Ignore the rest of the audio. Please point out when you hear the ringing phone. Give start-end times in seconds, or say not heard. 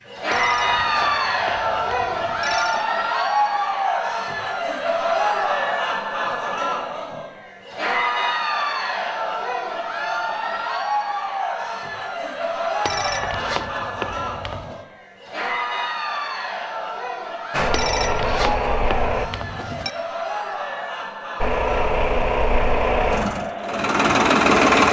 0.3-2.9, 12.8-14.8, 17.7-19.9.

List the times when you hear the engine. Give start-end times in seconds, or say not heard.
17.5-19.3, 21.4-24.8.